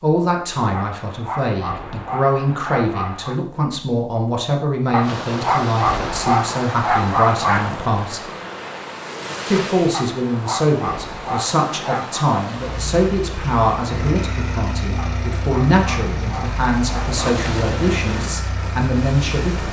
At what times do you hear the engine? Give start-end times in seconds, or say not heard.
12.6-19.6.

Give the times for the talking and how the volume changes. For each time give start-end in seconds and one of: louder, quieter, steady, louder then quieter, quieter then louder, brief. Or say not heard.
0.0-8.2 steady
9.5-19.6 steady.